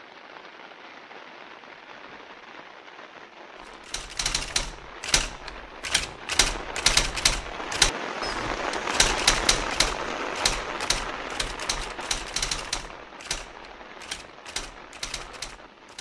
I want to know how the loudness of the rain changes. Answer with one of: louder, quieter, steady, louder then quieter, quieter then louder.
louder then quieter.